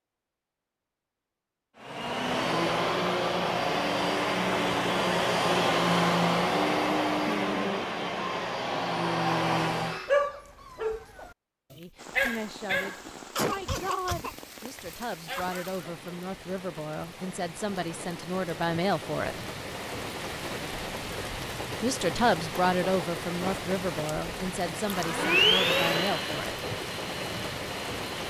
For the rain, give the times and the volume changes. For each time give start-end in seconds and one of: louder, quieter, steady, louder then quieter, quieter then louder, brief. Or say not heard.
11.9-28.2 louder.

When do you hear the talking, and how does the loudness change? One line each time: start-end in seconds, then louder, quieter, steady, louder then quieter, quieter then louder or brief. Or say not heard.
11.8-19.4 louder
21.8-26.6 quieter.